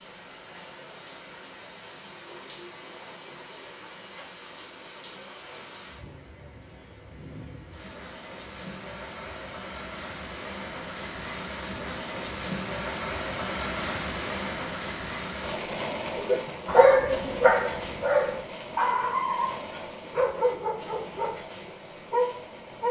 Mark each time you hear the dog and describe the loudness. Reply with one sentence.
The dog can be heard from 16.1 to 22.8 s, getting quieter.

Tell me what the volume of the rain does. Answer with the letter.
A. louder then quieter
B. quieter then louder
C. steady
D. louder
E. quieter
A.